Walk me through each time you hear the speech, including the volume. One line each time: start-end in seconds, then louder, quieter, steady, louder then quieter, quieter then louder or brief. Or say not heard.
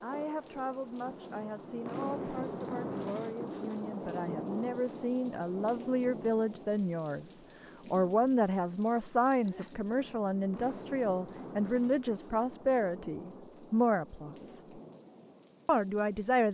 0.0-14.6 louder
15.7-16.4 brief.